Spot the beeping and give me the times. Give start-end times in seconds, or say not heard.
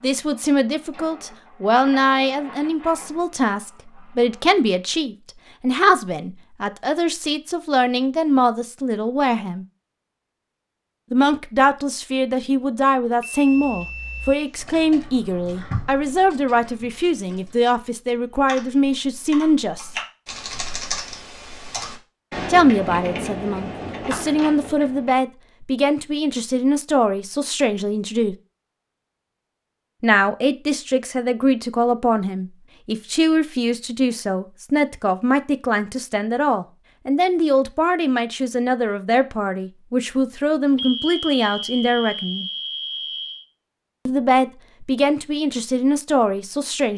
13.2-14.6, 40.8-43.5.